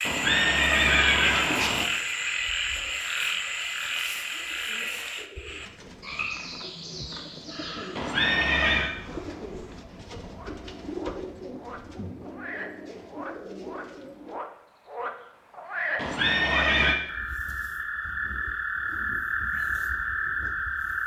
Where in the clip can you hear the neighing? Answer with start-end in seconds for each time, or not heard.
0.1-1.9, 8.0-8.9, 15.9-16.9.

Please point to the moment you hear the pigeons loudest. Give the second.
11 s.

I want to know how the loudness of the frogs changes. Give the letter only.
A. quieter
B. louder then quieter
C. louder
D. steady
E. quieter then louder
E.